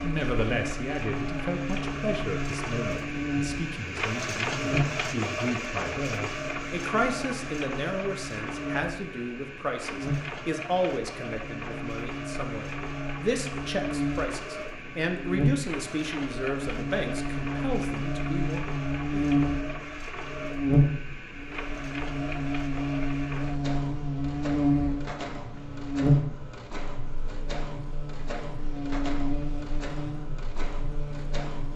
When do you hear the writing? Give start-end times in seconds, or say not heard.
not heard.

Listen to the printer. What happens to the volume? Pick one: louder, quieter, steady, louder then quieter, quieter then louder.
quieter.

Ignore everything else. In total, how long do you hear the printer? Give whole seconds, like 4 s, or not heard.
32 s.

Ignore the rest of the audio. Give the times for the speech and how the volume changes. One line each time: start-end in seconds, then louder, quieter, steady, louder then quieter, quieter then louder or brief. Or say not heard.
0.0-19.2 steady.